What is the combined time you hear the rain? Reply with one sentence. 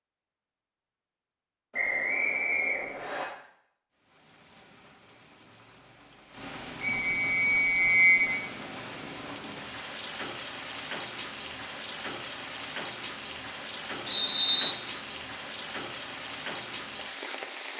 You can hear the rain for 14 seconds altogether.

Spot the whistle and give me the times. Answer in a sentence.
You can hear the whistle from 1.7 to 3.2 s, from 7.0 to 8.3 s and from 14.1 to 14.7 s.